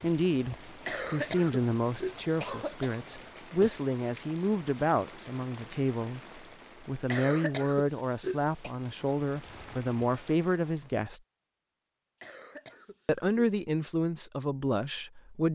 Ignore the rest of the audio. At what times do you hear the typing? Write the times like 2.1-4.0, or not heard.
not heard.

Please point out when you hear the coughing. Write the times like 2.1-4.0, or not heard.
0.8-3.0, 7.1-8.8, 12.2-13.5.